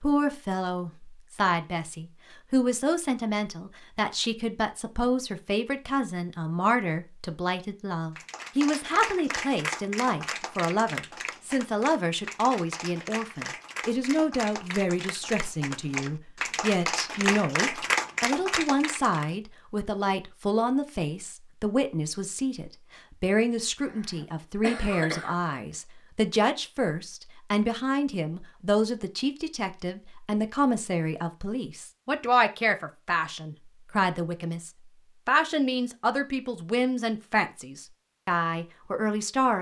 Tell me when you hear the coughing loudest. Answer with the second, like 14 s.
25 s.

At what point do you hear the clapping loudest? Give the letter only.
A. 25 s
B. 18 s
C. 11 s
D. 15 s
B.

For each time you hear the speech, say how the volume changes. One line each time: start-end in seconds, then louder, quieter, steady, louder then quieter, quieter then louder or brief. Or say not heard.
0.0-39.5 steady.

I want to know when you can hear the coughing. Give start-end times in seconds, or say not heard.
23.9-25.4.